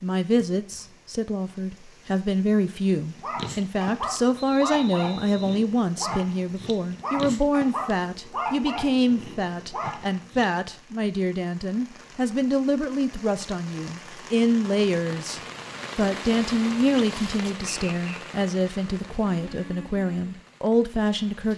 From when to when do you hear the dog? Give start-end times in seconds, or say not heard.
3.1-10.4.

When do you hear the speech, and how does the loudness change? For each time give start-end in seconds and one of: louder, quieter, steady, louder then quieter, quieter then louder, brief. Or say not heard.
0.0-21.5 steady.